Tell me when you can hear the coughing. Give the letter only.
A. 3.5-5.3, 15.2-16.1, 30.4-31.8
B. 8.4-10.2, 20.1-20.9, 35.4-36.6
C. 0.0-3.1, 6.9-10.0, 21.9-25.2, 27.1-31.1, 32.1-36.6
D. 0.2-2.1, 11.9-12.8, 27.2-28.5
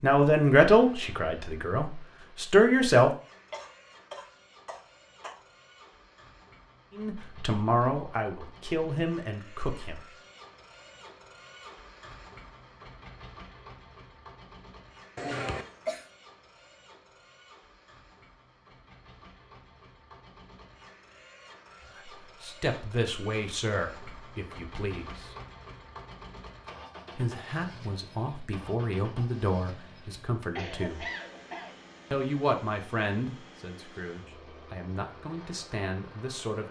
A.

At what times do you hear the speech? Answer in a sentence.
You can hear the speech from 0.0 to 3.1 s, from 6.9 to 10.0 s, from 21.9 to 25.2 s, from 27.1 to 31.1 s and from 32.1 to 36.6 s.